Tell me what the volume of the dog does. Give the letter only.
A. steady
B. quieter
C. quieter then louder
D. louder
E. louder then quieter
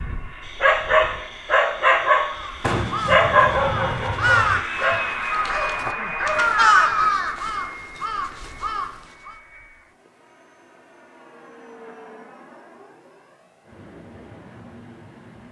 B.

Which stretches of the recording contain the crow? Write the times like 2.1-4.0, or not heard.
2.3-9.3.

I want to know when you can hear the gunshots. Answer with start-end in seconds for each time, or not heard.
2.6-4.6.